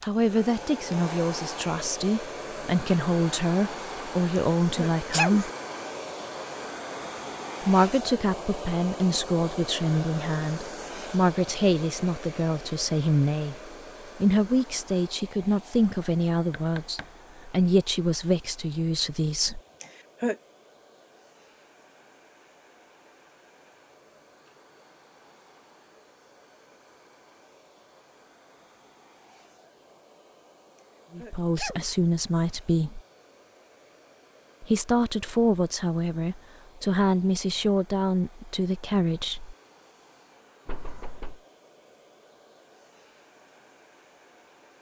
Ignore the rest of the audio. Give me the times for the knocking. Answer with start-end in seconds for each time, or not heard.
16.5-17.1, 40.6-41.4.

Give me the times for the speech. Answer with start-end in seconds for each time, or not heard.
0.0-5.5, 7.6-19.6, 31.1-33.0, 34.6-39.5.